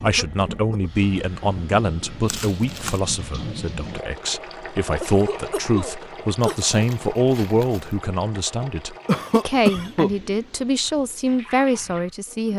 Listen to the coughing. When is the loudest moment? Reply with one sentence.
The volume of the coughing peaks at 10 seconds.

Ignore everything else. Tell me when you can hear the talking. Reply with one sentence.
The talking can be heard from 0.0 to 12.5 s.